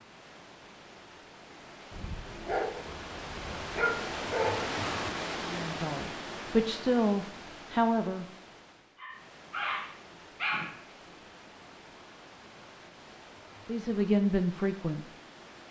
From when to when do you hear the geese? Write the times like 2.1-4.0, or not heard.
not heard.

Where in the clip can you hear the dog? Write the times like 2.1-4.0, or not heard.
1.9-4.6, 8.9-10.7.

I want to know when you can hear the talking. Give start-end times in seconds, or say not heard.
5.5-8.2, 13.7-15.0.